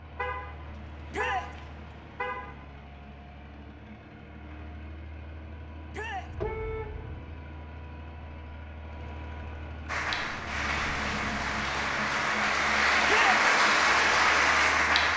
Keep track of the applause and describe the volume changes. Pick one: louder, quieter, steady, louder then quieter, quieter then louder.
louder.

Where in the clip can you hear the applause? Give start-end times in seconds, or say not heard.
9.8-15.1.